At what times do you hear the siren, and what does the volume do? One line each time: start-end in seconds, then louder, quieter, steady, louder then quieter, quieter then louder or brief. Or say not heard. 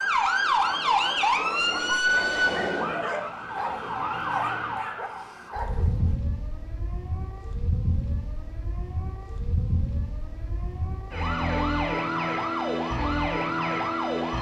0.0-14.3 quieter then louder.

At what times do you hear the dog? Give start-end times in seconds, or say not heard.
0.6-6.2.